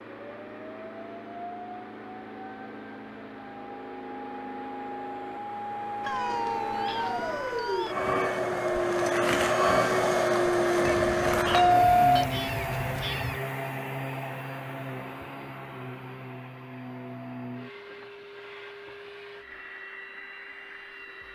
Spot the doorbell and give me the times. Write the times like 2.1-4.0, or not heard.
11.5-12.3.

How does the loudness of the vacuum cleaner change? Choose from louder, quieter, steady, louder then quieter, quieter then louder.
louder then quieter.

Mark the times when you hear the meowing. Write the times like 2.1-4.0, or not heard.
6.0-8.0, 10.8-13.4.